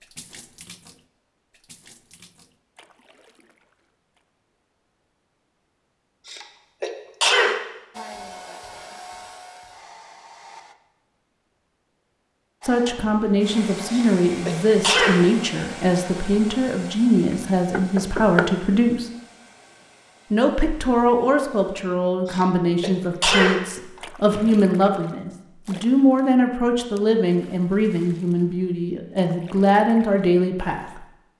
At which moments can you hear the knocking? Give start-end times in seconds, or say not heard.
17.3-18.5.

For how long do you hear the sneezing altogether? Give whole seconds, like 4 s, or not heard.
4 s.